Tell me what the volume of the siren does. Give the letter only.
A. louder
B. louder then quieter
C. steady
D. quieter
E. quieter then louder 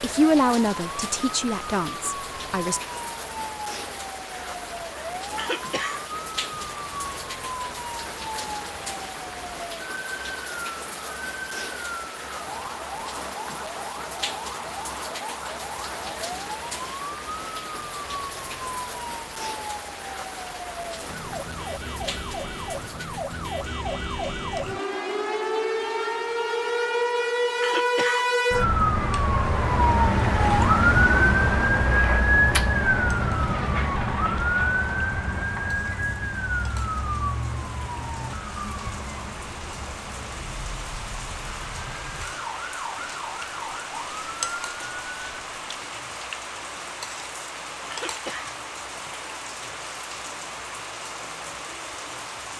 B.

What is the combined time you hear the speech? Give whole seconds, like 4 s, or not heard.
3 s.